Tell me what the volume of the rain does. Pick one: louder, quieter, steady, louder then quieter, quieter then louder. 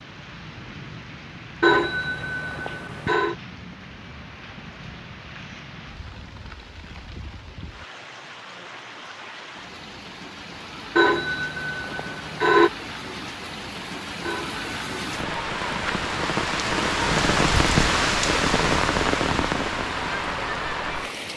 louder.